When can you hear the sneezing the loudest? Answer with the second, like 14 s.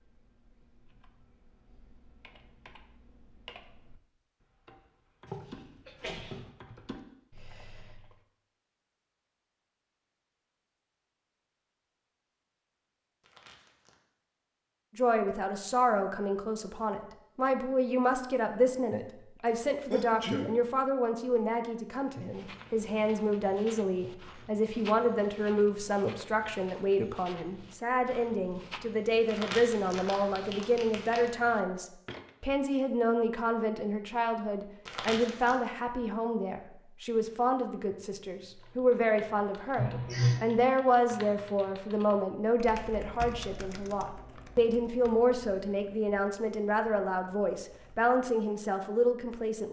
40 s.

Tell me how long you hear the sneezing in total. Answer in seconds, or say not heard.
3 s.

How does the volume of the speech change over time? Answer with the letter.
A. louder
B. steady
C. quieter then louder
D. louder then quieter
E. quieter
B.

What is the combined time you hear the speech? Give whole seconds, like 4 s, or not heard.
35 s.